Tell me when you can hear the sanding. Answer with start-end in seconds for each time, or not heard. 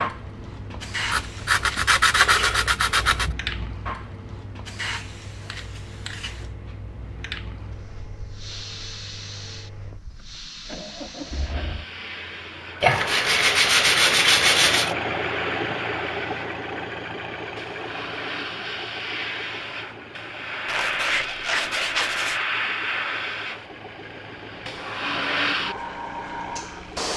1.1-3.4, 12.8-14.9, 20.6-22.4.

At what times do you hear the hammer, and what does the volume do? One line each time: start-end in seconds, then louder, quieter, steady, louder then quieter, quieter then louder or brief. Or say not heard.
not heard.